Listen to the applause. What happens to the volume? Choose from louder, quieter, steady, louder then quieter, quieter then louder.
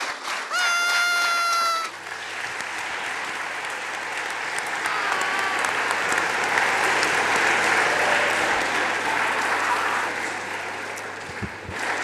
louder then quieter.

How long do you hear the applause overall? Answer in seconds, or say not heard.
12 s.